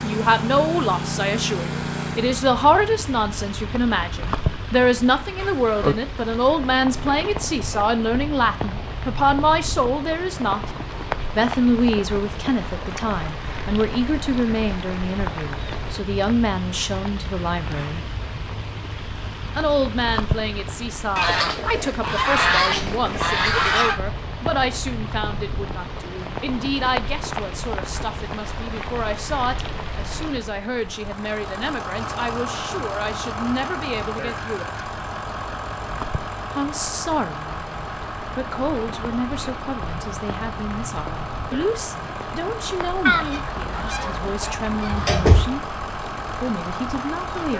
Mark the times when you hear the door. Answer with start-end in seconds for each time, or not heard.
44.4-45.5.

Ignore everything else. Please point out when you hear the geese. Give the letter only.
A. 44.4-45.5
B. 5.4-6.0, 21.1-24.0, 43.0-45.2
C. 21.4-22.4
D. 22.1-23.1
B.